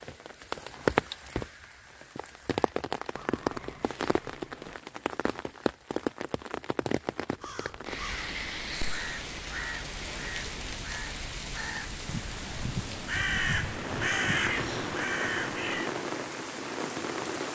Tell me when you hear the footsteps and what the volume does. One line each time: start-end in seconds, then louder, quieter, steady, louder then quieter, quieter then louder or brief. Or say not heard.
not heard.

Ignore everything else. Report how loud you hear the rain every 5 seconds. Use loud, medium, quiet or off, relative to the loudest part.
loud, loud, medium, loud.